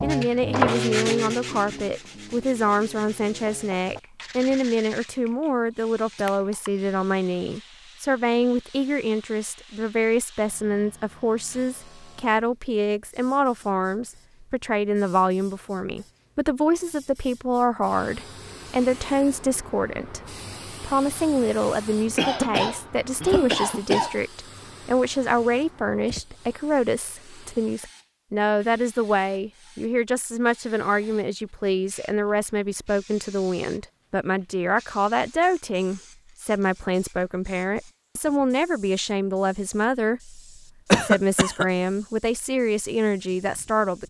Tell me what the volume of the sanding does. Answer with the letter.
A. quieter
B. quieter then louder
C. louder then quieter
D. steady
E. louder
A.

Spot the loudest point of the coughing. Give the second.
41 s.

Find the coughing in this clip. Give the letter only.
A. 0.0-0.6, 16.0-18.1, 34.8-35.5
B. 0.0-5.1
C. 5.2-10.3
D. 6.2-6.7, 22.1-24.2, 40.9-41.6
D.